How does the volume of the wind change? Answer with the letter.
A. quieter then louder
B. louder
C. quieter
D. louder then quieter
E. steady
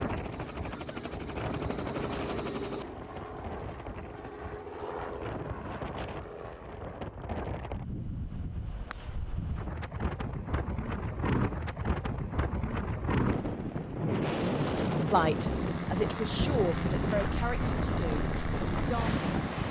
B.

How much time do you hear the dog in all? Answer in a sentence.
You can't hear the dog here.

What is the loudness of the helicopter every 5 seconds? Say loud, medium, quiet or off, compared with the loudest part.
loud, medium, off, loud.